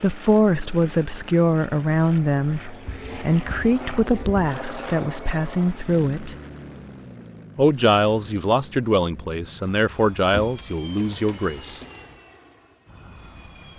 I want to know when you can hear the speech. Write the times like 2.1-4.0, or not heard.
0.0-6.3, 7.5-11.8.